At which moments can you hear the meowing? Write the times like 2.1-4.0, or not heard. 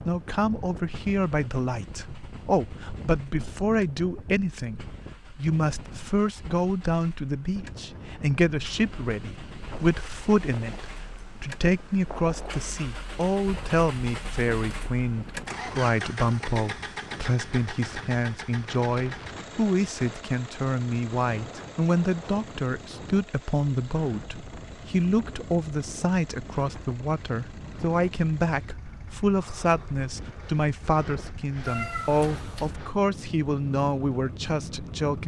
31.6-32.8.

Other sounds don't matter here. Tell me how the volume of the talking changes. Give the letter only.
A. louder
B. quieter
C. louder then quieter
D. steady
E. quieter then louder
D.